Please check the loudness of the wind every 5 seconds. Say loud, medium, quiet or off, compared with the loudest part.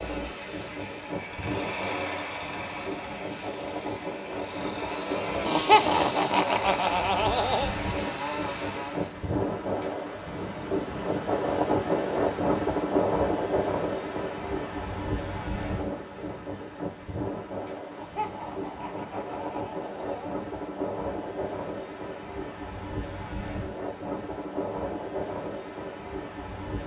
medium, medium, loud, medium, medium, medium.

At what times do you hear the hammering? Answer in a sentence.
The hammering can't be heard in this clip.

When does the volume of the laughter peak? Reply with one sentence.
The volume of the laughter peaks at 6 seconds.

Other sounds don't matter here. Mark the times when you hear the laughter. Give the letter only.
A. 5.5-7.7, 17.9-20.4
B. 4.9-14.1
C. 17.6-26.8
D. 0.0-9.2
A.